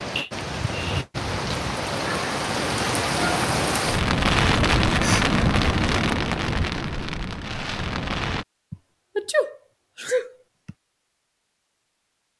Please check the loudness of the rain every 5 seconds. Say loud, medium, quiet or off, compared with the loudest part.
loud, loud, off.